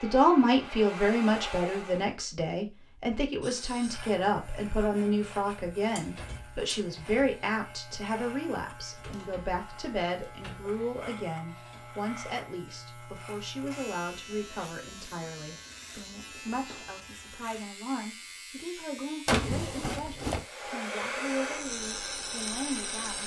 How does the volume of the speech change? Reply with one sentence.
The loudness of the speech goes down.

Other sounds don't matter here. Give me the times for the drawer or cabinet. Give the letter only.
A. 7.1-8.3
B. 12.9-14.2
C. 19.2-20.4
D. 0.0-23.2
C.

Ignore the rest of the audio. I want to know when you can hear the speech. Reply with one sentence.
You can hear the speech from 0.0 to 23.2 s.